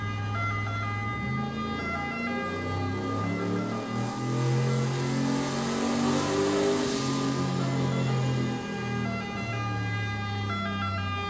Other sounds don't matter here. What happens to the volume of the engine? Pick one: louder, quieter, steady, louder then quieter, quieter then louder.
louder then quieter.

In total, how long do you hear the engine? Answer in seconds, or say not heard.
11 s.